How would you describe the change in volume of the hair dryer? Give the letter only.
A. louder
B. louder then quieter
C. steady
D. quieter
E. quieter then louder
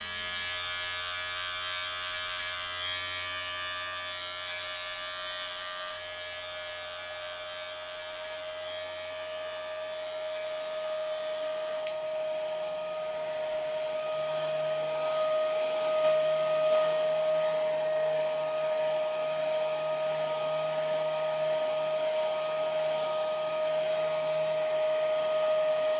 A.